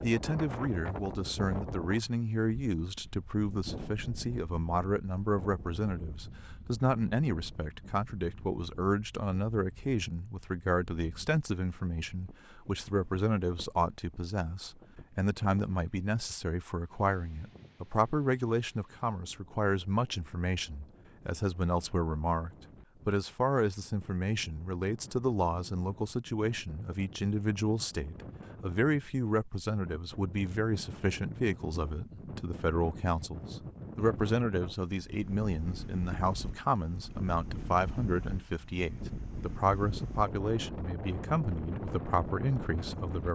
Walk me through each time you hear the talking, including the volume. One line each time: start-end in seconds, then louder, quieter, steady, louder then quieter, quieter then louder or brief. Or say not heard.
0.0-43.3 steady.